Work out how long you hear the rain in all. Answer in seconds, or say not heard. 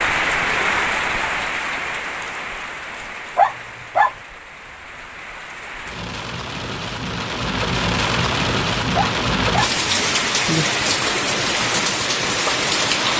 13 s.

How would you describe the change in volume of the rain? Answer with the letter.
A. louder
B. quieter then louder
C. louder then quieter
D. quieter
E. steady
B.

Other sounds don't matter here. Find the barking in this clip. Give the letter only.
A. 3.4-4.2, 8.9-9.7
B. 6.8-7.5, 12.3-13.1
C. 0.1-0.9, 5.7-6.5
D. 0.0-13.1
A.